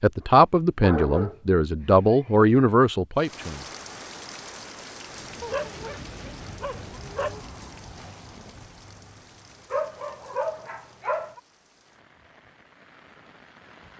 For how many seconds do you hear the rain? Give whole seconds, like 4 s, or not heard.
11 s.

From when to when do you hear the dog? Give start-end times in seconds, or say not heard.
0.2-2.3, 5.4-7.5, 9.7-11.4.